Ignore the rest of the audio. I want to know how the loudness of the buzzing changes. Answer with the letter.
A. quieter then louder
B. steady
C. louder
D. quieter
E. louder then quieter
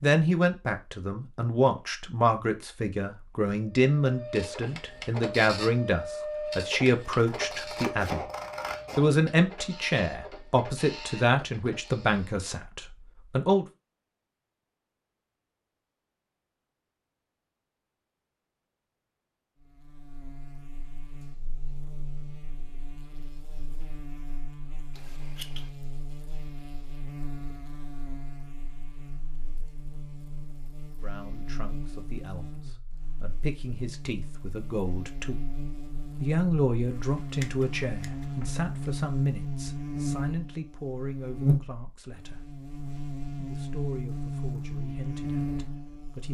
C.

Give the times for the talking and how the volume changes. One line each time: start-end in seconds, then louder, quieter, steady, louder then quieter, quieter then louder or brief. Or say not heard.
0.0-8.2 steady
8.9-13.7 quieter
31.0-35.4 louder
36.2-42.5 quieter
43.4-46.2 brief.